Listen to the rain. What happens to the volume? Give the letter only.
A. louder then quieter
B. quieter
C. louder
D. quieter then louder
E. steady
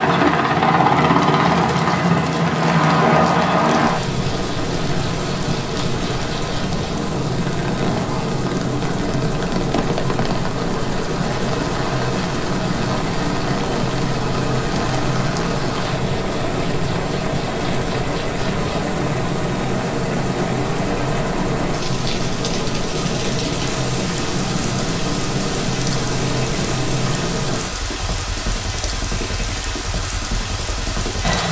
E.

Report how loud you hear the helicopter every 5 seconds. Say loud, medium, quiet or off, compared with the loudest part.
loud, medium, medium, medium, medium, medium, medium.